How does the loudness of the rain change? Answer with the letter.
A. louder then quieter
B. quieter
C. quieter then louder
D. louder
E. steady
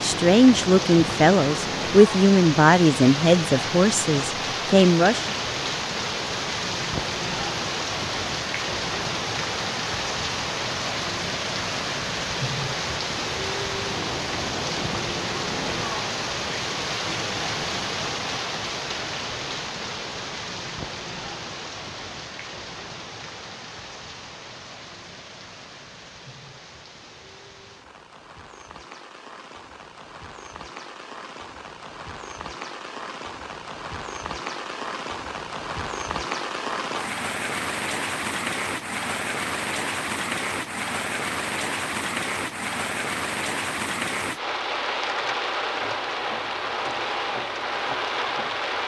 C.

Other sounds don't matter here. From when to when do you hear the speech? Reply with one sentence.
You can hear the speech from 0.0 to 5.3 s.